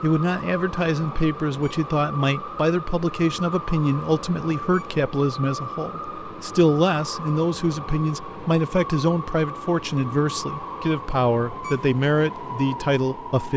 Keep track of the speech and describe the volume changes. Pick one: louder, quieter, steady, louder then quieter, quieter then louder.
steady.